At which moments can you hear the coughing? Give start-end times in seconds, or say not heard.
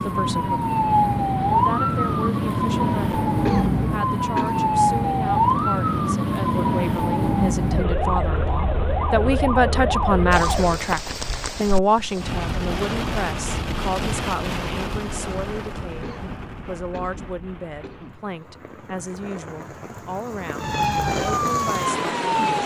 3.5-4.7, 16.0-18.3.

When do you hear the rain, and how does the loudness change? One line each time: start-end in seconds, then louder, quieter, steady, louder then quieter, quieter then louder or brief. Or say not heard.
10.3-22.6 quieter then louder.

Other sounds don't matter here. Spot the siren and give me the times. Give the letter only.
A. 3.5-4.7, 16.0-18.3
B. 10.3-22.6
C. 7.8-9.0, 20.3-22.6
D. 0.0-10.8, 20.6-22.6
D.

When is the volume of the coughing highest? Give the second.
4 s.